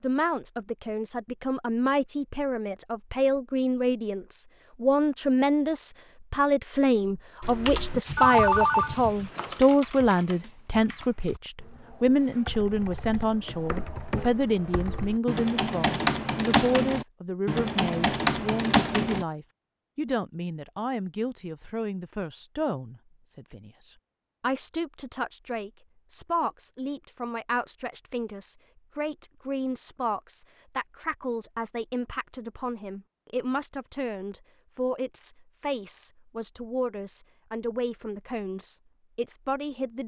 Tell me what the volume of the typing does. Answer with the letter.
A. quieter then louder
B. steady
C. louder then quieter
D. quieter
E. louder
A.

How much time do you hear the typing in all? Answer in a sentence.
You can hear the typing for 12 seconds altogether.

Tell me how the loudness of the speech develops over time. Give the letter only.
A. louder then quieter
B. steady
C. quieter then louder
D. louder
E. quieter
E.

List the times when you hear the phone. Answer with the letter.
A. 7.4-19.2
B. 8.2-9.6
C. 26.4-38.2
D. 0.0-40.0
B.